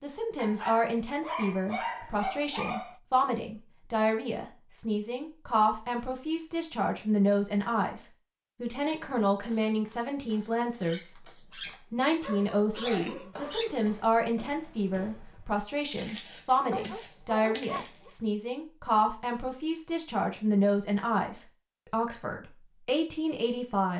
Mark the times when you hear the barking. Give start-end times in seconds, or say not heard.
0.3-3.0, 10.8-13.8, 16.6-18.1.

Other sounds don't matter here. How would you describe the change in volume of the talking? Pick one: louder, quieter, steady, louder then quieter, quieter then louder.
steady.